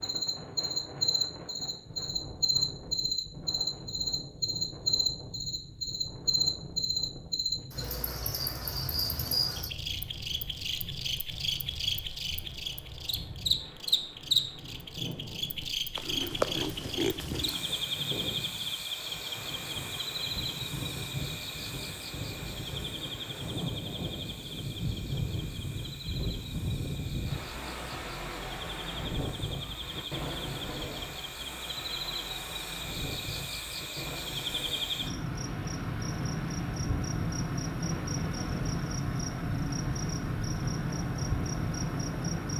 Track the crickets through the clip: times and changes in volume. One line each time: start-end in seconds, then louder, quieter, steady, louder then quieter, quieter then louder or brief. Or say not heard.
0.0-42.5 quieter then louder.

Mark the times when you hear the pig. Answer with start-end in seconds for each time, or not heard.
15.9-17.6.